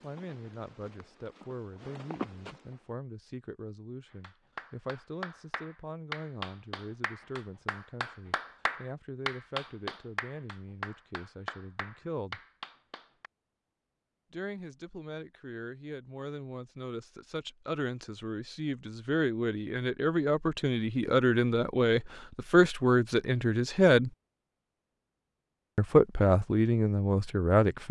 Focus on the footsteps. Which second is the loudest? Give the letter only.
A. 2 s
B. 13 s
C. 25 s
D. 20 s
A.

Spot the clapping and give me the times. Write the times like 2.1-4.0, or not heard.
4.1-13.3.